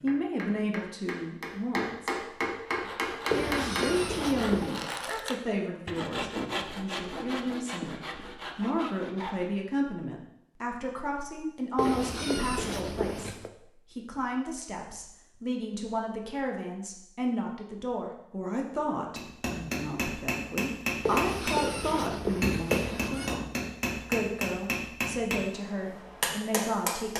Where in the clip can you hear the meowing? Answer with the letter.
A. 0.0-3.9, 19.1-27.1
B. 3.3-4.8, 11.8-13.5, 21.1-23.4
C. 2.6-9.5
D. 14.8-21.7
B.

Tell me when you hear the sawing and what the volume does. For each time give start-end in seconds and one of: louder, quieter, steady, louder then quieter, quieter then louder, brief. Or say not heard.
2.6-9.5 louder then quieter.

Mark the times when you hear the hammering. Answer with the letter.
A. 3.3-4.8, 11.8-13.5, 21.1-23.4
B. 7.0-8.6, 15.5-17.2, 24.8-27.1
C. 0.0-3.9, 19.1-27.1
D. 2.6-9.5
C.